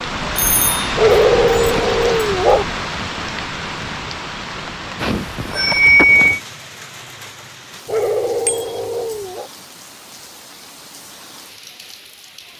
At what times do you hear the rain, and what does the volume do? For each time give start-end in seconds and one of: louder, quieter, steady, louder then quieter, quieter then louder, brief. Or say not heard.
0.0-12.5 quieter.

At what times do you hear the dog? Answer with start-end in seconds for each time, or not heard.
0.9-2.6, 7.8-9.5.